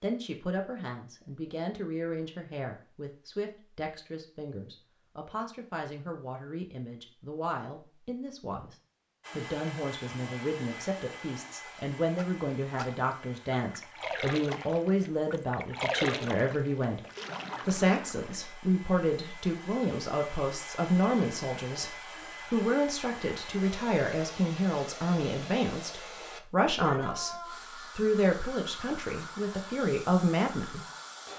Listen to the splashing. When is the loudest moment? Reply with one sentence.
The loudest moment of the splashing is at 16 seconds.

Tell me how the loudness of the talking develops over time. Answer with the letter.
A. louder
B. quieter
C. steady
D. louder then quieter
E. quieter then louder
A.